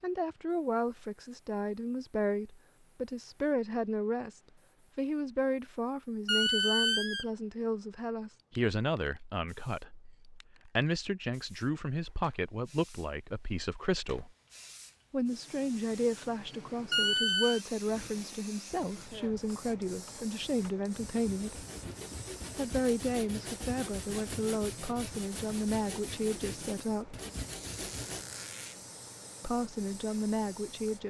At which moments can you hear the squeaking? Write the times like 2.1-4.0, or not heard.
6.2-7.2, 16.9-17.6, 27.5-28.8.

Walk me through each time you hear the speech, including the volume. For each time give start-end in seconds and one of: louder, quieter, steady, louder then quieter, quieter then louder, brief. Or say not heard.
0.0-14.3 steady
15.1-21.6 steady
22.6-27.2 steady
29.4-31.0 brief.